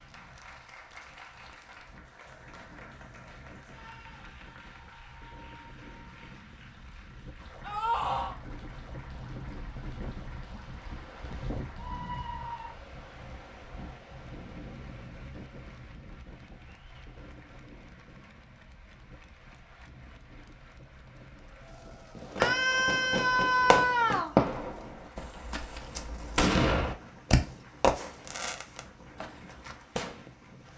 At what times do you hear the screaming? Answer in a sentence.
The screaming can be heard from 7.6 to 8.3 s, from 11.8 to 12.8 s and from 22.4 to 24.4 s.